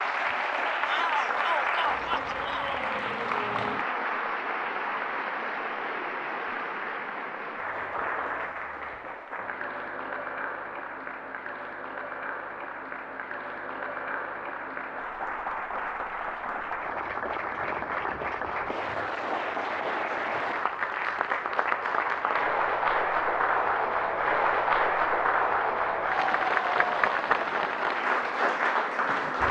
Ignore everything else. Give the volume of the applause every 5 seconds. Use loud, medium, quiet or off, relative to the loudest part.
loud, medium, medium, medium, loud, loud.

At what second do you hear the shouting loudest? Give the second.
1 s.